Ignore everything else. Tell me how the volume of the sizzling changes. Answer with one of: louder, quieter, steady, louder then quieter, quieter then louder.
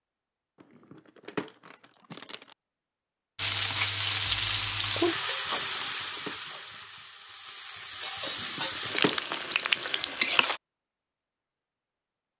quieter then louder.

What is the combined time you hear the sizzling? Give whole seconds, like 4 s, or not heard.
7 s.